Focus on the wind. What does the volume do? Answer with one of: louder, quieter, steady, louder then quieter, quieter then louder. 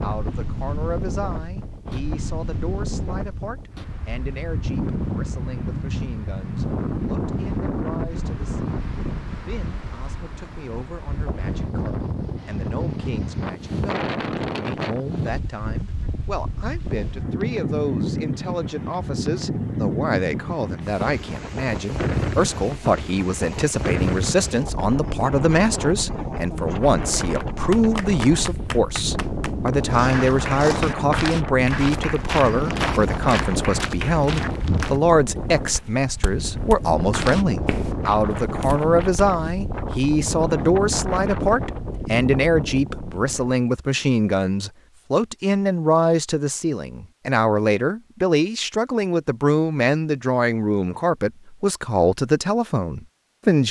steady.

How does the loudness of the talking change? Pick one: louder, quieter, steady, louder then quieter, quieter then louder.
louder.